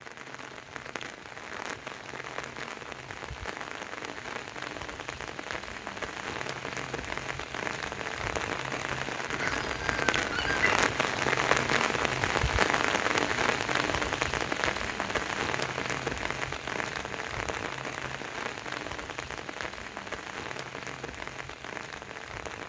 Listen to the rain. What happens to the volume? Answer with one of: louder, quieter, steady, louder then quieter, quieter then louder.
louder then quieter.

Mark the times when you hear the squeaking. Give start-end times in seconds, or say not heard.
9.2-10.8.